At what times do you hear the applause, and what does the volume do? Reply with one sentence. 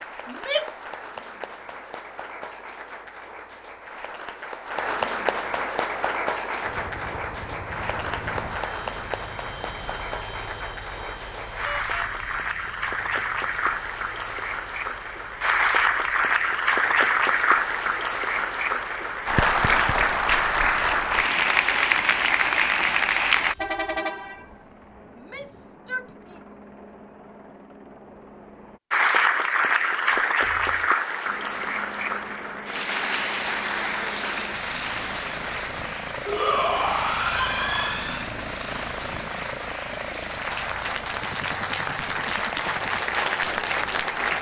The applause can be heard from 0.0 to 23.6 s, getting louder; and from 28.9 to 44.3 s, getting quieter then louder.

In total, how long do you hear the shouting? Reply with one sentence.
You can hear the shouting for 4 seconds altogether.